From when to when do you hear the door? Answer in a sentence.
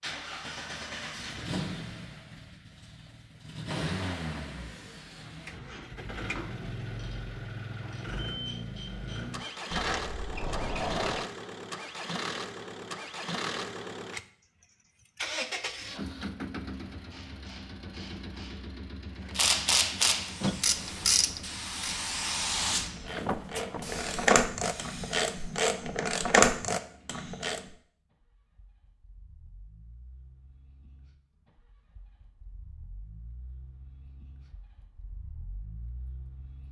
The door can be heard from 9.7 to 11.3 s and from 20.4 to 21.1 s.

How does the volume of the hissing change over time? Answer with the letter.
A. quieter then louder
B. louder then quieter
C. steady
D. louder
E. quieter
B.